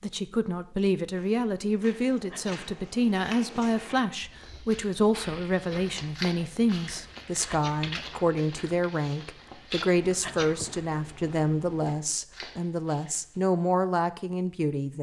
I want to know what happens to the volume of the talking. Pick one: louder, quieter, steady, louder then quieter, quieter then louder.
steady.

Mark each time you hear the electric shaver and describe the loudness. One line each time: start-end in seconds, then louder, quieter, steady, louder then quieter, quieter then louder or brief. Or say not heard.
not heard.